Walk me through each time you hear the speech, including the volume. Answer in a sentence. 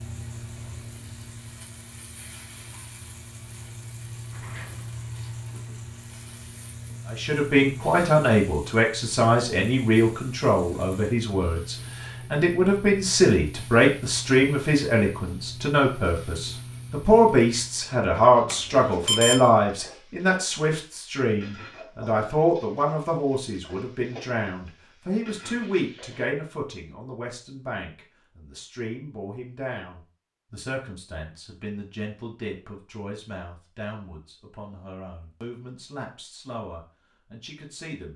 The speech can be heard from 7.1 to 38.1 s, getting quieter.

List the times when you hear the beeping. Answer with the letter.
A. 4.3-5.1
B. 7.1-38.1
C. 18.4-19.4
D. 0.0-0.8
C.